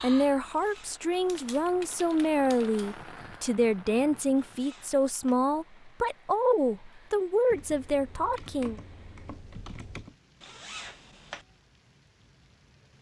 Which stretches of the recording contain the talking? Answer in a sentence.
You can hear the talking from 0.0 to 8.8 s.